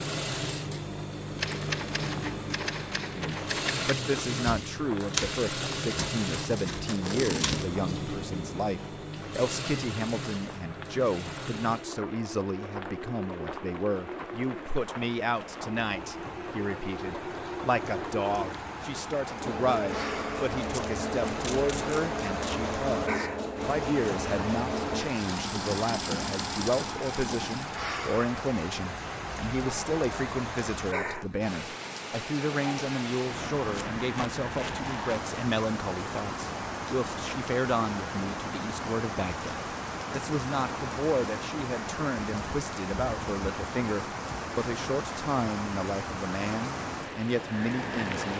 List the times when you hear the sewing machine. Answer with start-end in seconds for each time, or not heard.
0.0-27.8.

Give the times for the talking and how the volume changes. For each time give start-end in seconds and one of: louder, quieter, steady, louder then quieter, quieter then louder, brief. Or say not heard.
3.1-48.3 steady.